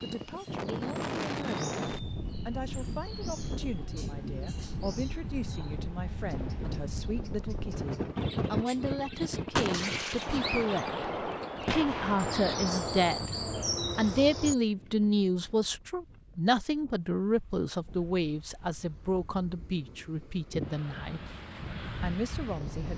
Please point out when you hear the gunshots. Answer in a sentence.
The gunshots can be heard from 9.6 to 13.3 s.